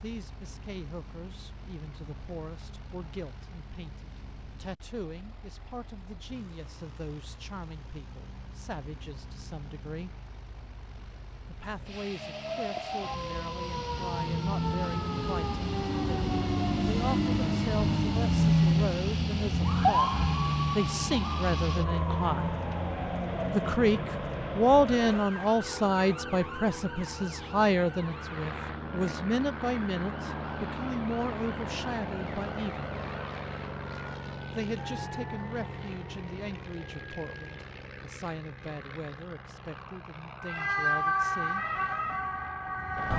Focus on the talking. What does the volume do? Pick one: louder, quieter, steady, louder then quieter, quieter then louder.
louder then quieter.